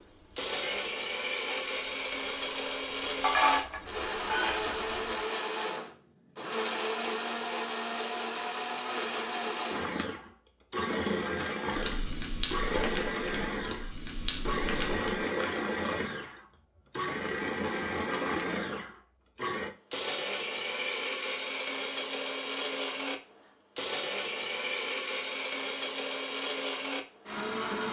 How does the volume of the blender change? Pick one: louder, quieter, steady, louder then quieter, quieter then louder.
steady.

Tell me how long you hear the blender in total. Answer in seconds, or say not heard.
28 s.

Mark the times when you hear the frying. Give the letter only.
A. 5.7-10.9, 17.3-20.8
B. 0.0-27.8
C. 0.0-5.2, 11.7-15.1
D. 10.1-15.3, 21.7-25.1
C.